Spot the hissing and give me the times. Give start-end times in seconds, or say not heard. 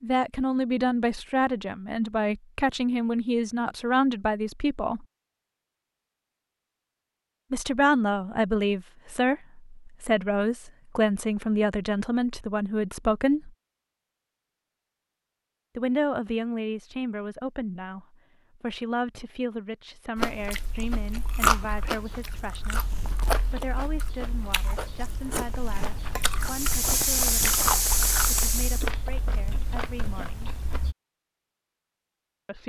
26.4-28.9.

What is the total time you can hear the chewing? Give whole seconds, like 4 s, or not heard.
11 s.